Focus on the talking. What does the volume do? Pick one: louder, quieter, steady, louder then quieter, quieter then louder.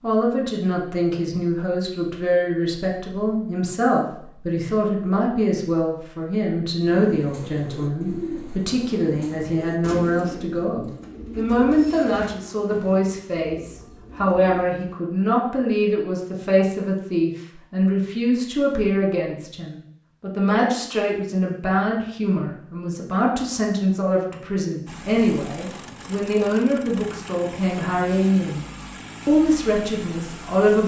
steady.